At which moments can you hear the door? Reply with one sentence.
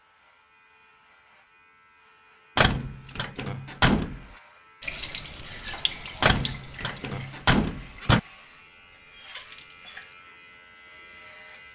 The door can be heard from 2.5 to 4.2 s and from 6.2 to 8.2 s.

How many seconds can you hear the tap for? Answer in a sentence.
The tap can be heard for 5 seconds in total.